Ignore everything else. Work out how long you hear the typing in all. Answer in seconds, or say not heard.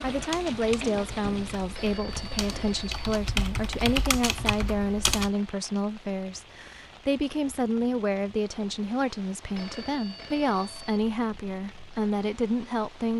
5 s.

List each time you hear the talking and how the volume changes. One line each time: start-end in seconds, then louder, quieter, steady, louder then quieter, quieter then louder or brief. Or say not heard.
0.0-13.1 steady.